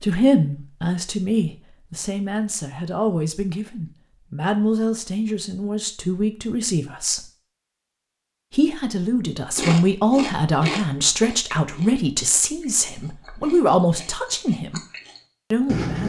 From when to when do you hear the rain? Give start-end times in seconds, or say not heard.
not heard.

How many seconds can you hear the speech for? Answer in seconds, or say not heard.
14 s.